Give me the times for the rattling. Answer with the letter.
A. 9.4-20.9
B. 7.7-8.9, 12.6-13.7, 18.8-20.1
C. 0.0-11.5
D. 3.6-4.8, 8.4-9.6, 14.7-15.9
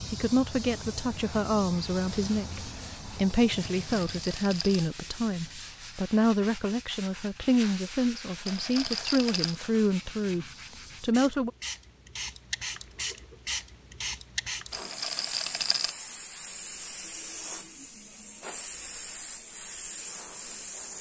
D.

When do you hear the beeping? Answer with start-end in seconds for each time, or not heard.
not heard.